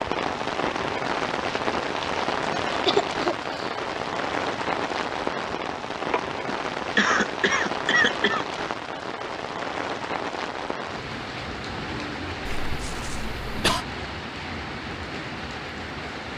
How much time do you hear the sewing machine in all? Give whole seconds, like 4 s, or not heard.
not heard.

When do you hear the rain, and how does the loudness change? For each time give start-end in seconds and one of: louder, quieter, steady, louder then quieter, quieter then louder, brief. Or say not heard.
0.0-16.3 quieter.